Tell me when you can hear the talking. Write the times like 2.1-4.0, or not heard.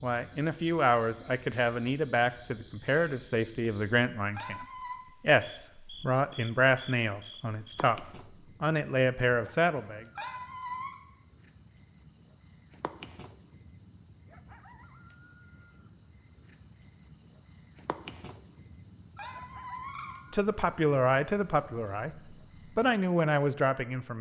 0.0-10.1, 20.3-24.1.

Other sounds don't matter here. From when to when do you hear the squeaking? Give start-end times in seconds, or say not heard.
4.3-5.0, 10.2-10.9, 19.1-20.2.